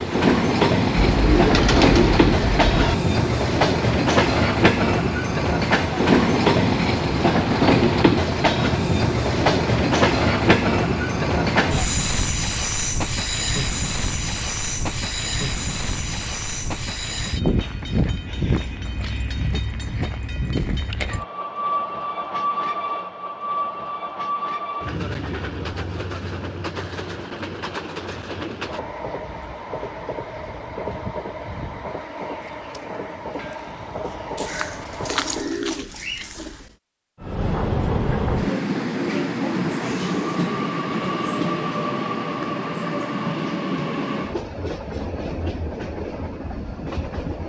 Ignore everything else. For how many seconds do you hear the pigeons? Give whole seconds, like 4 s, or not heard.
4 s.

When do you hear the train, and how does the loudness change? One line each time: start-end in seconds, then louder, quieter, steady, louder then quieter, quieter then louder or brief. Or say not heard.
0.0-35.5 quieter
37.2-47.4 quieter.